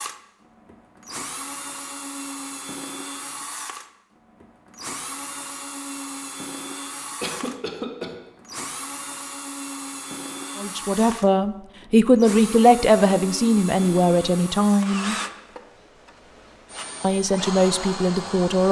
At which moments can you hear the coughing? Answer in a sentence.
You can hear the coughing from 7.2 to 8.2 s.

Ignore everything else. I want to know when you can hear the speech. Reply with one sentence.
You can hear the speech from 10.6 to 15.2 s and from 17.0 to 18.6 s.